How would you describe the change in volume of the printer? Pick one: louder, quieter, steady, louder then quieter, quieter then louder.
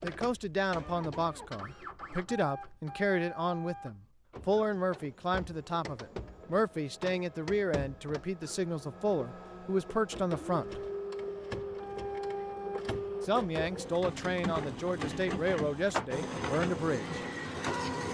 louder.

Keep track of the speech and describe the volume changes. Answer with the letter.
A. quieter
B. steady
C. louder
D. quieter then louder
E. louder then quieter
B.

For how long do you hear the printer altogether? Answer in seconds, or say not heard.
18 s.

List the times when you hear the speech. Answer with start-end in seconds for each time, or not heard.
0.0-10.8, 13.2-17.2.